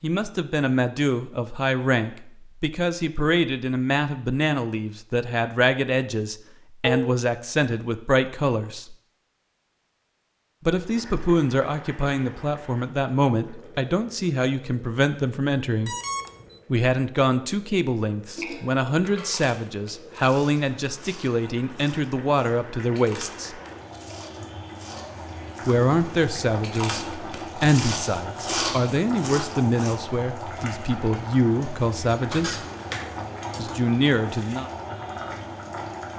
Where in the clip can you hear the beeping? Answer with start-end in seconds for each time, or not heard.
15.8-16.6.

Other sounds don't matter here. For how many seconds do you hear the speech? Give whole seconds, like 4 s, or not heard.
29 s.